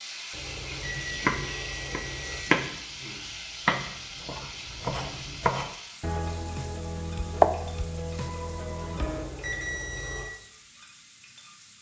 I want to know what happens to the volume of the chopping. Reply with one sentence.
The loudness of the chopping goes down, then up.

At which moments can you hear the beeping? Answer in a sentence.
You can hear the beeping from 0.3 to 2.5 s and from 8.9 to 10.2 s.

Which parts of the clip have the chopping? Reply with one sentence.
You can hear the chopping from 0.7 to 9.3 s.